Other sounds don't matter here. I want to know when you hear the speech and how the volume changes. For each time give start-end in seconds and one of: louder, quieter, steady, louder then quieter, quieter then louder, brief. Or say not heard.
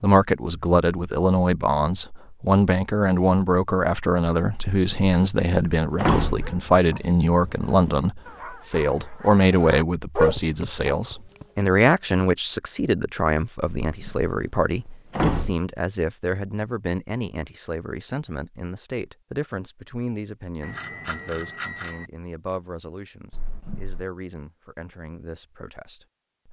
0.0-26.4 quieter.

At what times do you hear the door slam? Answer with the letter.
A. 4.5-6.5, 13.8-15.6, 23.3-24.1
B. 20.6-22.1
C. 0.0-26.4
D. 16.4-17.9
A.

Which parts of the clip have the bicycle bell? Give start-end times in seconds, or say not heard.
20.6-22.1.